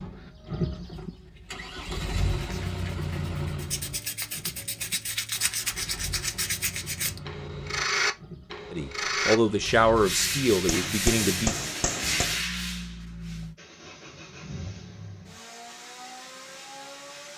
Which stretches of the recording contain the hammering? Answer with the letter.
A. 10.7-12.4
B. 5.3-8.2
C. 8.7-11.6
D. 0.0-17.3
A.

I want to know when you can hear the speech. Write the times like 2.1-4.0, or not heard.
8.7-11.6.